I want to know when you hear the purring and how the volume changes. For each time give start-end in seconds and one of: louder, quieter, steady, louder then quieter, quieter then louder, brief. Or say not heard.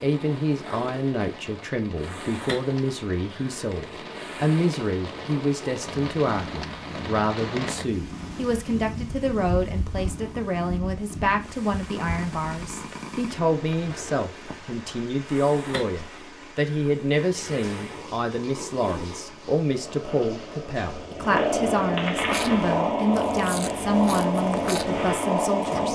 0.0-25.9 louder.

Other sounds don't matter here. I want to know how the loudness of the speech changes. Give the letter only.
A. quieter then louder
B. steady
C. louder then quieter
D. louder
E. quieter
B.